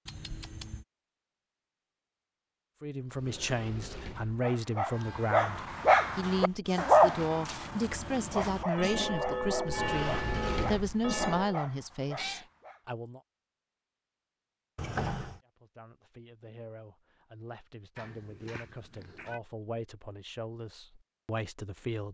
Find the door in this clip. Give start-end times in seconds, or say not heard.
3.1-4.4, 9.7-11.2, 14.8-15.4.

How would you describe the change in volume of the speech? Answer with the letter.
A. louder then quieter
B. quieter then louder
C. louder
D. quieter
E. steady
B.